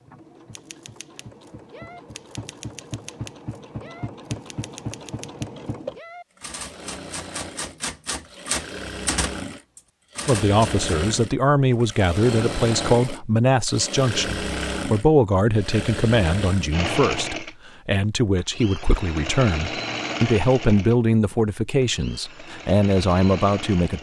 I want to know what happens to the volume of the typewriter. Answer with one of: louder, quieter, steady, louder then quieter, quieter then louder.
louder.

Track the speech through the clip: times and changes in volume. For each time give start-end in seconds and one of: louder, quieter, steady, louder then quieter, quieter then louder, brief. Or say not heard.
10.2-23.9 steady.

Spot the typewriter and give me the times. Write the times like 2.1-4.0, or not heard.
0.5-10.8.